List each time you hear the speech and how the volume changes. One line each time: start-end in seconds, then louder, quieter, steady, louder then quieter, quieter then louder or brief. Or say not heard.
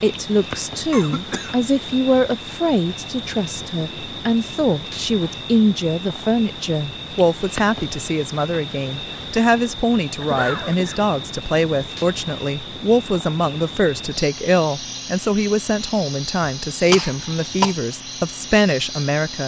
0.0-19.4 steady.